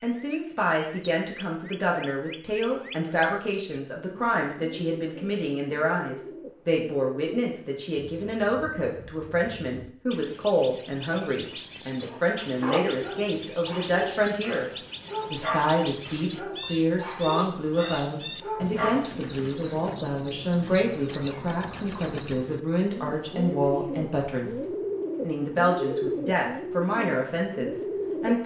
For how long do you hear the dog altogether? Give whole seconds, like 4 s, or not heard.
8 s.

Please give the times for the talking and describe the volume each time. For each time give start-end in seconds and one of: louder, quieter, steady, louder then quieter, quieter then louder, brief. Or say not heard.
0.0-14.7 steady
15.3-28.4 steady.